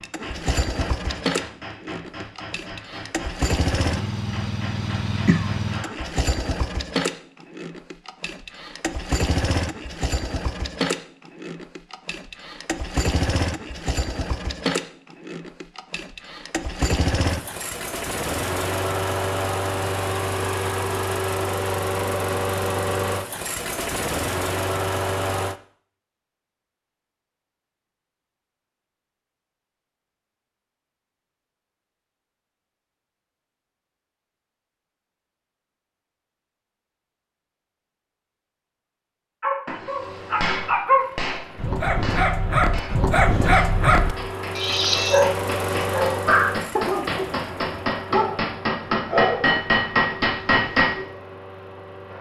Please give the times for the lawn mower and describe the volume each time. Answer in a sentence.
You can hear the lawn mower from 0.0 to 25.6 s, at a steady volume; and from 40.0 to 52.1 s, getting louder then quieter.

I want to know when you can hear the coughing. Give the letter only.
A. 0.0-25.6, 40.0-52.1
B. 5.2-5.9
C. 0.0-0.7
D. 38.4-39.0
B.